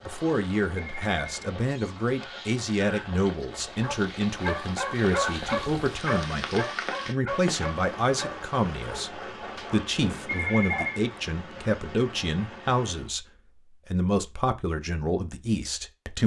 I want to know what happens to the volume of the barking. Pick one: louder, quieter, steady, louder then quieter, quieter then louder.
quieter.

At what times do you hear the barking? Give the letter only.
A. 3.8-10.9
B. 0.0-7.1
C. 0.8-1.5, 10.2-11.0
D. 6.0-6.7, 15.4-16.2
A.